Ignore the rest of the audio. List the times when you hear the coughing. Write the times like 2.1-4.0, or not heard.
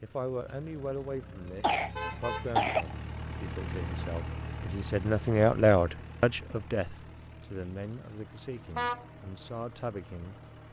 1.6-2.9.